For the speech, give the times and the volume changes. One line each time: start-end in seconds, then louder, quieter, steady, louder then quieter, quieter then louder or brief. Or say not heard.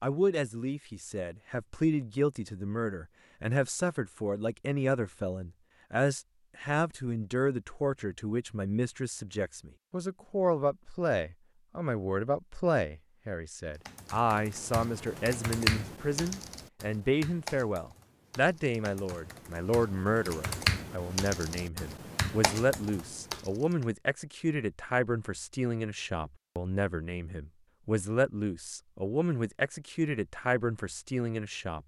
0.0-31.8 steady.